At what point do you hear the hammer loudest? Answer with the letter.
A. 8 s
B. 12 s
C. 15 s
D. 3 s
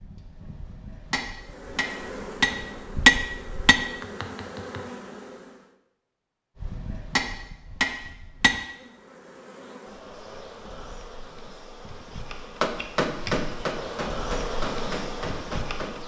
D.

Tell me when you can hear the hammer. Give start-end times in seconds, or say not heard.
0.0-3.8, 6.5-8.6, 12.6-15.9.